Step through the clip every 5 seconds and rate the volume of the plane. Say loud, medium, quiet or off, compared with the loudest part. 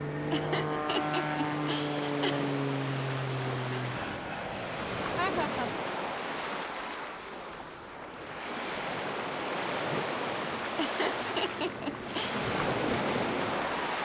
loud, medium, medium.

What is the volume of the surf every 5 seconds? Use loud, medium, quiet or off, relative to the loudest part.
medium, loud, loud.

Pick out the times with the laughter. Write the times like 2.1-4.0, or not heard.
0.3-2.5, 5.2-5.7, 10.8-12.4.